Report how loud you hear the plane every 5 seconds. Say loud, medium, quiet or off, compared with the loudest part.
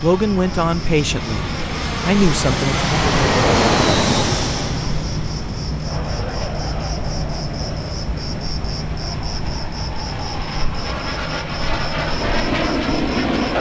loud, quiet, loud.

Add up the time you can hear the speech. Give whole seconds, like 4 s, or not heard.
3 s.